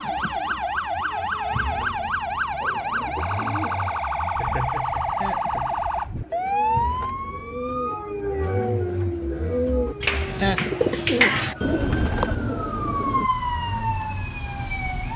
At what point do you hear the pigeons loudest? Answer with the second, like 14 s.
11 s.